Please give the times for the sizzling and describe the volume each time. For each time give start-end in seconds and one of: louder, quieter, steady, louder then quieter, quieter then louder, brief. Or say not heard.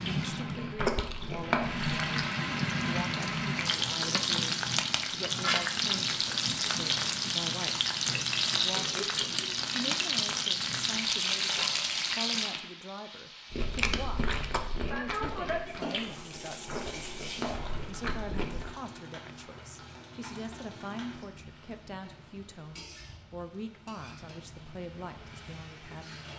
0.0-26.3 quieter.